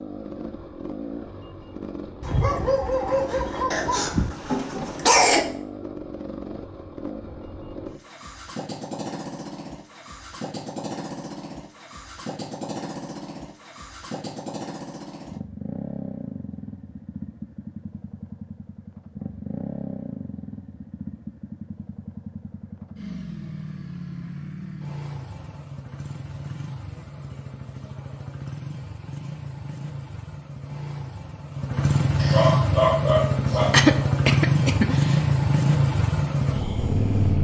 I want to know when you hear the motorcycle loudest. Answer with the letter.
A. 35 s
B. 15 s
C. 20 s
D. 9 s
A.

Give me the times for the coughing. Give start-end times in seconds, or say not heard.
3.7-5.5, 33.7-35.0.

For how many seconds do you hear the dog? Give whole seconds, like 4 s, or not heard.
4 s.